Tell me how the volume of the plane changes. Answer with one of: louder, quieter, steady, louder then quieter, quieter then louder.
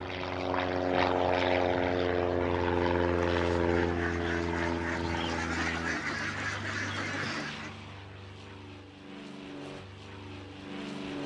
quieter.